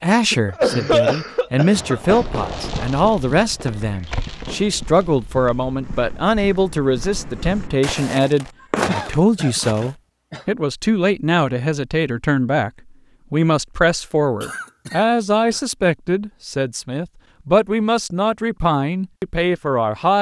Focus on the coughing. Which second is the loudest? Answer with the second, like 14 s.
1 s.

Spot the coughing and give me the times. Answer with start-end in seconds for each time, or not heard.
0.3-2.2, 8.8-10.4, 14.4-15.6.